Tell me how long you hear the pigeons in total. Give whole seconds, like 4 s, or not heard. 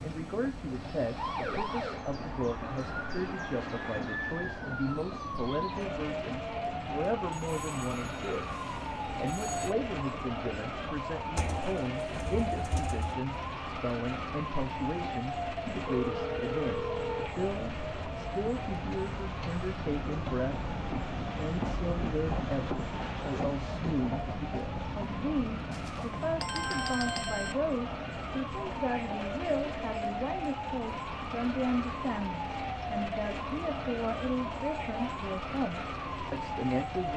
2 s.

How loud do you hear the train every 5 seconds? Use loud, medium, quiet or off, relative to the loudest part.
medium, medium, medium, medium, loud, medium, medium, medium.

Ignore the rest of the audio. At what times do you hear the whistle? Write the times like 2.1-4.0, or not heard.
not heard.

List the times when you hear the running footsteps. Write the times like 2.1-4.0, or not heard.
not heard.